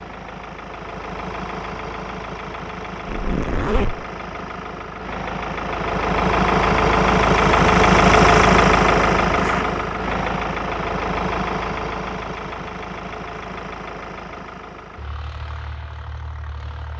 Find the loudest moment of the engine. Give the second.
8 s.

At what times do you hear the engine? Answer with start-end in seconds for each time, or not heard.
0.0-16.9.